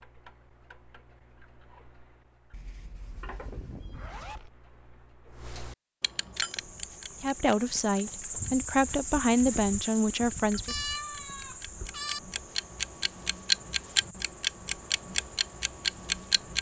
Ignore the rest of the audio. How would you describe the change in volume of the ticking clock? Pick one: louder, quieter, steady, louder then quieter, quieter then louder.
louder.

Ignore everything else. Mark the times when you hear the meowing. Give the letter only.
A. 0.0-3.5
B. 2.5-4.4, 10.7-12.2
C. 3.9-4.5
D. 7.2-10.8
B.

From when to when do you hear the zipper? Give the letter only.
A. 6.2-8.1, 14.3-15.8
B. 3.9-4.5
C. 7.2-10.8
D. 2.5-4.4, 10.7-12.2
B.